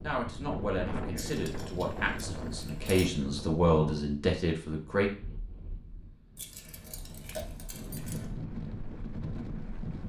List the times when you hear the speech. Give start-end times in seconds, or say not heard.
0.0-5.1.